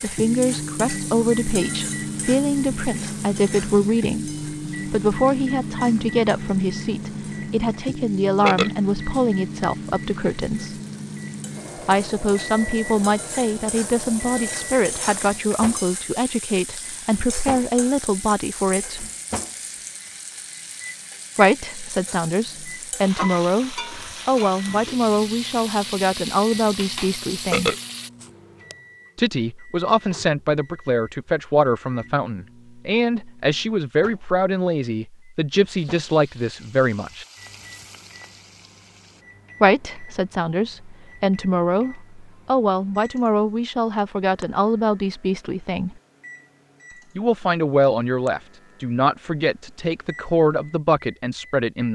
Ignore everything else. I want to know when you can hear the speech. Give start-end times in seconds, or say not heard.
0.0-10.8, 11.8-19.1, 21.4-27.8, 29.1-37.2, 39.6-46.0, 47.1-51.9.